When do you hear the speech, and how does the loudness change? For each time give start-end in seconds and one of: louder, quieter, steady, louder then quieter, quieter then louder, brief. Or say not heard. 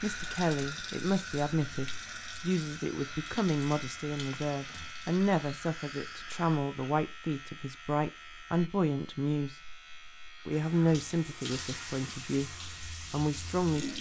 0.0-9.7 steady
10.4-12.5 brief
13.1-13.9 brief.